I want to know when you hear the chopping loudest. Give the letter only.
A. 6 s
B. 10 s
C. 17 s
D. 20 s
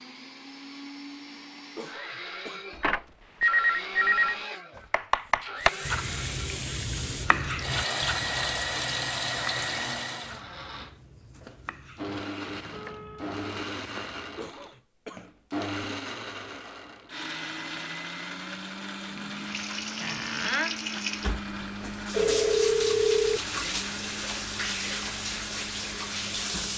A.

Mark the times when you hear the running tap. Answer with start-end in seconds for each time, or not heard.
5.6-10.4, 19.1-26.7.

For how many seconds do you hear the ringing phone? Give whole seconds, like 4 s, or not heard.
5 s.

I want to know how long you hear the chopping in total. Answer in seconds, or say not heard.
9 s.